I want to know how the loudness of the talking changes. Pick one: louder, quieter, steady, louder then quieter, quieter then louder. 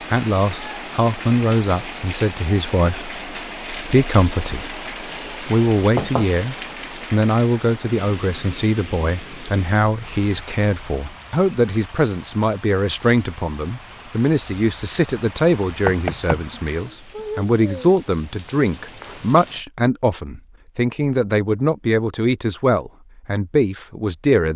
steady.